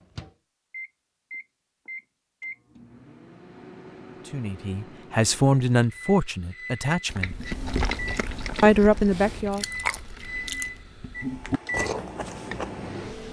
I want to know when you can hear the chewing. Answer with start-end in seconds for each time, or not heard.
7.0-12.9.